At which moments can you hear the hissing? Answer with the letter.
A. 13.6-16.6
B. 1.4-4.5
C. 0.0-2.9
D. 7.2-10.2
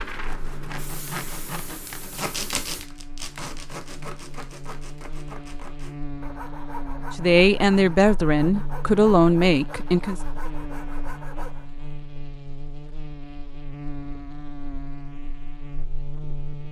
C.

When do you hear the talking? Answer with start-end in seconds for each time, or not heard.
7.2-10.2.